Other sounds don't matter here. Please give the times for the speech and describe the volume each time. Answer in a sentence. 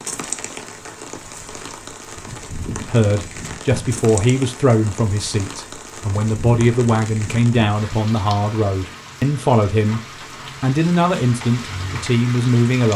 The speech can be heard from 2.9 to 10.0 s, at a steady volume; and briefly from 10.6 to 12.9 s.